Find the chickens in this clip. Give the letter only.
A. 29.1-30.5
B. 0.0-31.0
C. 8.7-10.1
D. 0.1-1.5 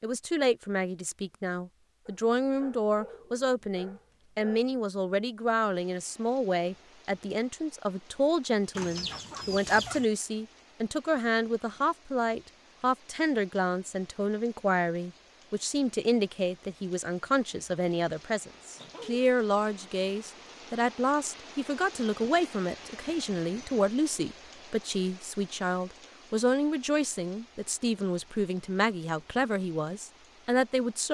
C.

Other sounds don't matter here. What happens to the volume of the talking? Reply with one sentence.
The loudness of the talking stays about the same.